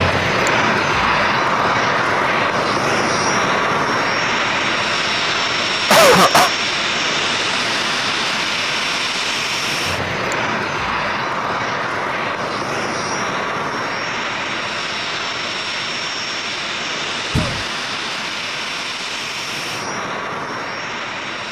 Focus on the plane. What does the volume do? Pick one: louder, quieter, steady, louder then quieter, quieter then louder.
quieter.